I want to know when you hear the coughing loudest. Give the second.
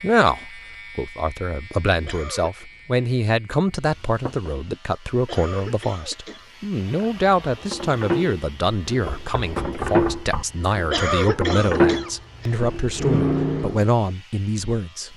11 s.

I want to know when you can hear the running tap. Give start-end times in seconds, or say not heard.
6.8-13.8.